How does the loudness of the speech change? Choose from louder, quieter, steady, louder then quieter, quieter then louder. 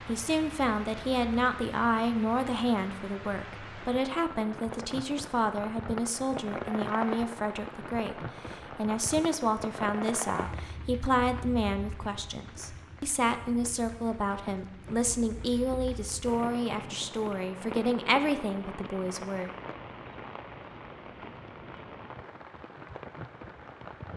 steady.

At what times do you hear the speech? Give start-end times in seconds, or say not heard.
0.1-19.5.